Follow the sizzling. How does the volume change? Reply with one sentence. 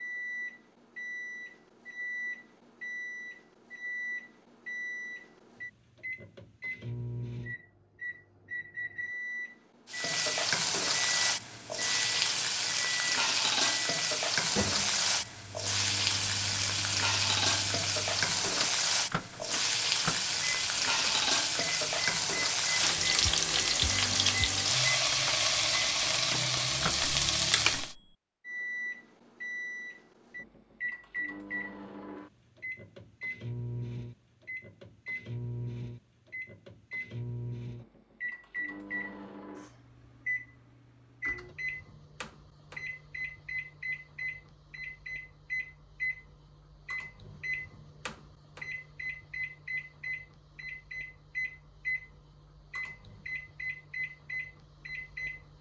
The loudness of the sizzling stays about the same.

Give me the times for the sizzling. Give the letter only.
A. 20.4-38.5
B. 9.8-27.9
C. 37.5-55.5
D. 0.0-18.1
B.